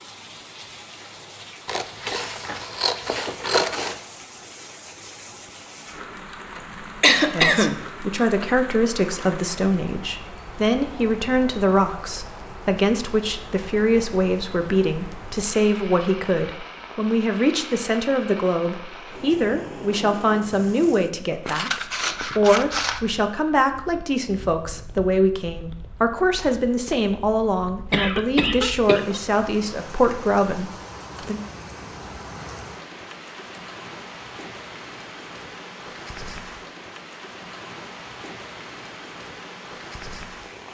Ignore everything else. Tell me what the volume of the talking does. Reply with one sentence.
The loudness of the talking stays about the same.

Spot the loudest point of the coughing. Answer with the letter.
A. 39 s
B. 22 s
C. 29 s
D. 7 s
D.